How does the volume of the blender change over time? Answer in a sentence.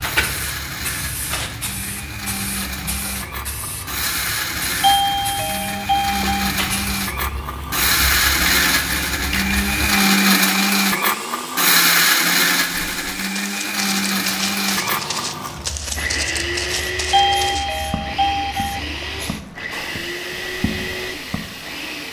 The loudness of the blender goes up, then down.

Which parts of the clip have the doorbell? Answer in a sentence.
You can hear the doorbell from 4.8 to 6.5 s and from 17.1 to 18.8 s.